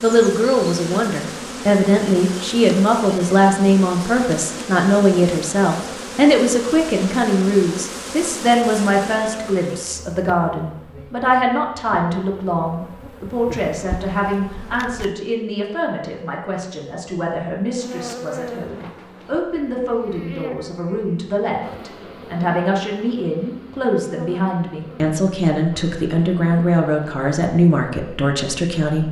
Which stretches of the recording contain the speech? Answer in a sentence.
You can hear the speech from 0.0 to 29.0 s.